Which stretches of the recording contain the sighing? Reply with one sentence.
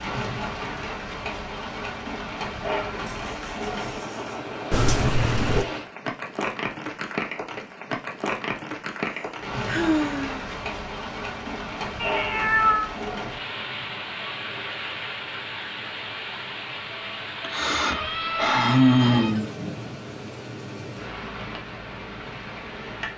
You can hear the sighing from 3.0 to 4.5 s, from 9.1 to 10.4 s and from 17.4 to 19.6 s.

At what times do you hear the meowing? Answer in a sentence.
You can hear the meowing from 4.7 to 5.7 s, from 11.9 to 12.9 s and from 18.0 to 19.4 s.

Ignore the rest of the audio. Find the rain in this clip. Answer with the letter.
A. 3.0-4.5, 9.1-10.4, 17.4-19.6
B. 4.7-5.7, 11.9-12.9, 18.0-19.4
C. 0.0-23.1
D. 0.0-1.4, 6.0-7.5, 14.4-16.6
C.